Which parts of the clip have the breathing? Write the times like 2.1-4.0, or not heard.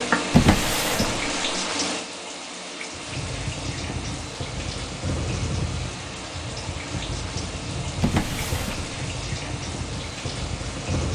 not heard.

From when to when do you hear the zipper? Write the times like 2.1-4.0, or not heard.
not heard.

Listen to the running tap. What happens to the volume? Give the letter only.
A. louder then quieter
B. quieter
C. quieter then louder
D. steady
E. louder
B.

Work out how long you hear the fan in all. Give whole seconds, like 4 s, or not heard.
8 s.